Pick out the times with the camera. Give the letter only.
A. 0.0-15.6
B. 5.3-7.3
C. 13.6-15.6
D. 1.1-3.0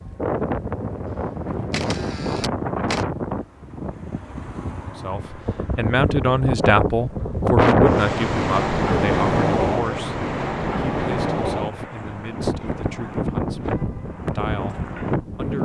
D.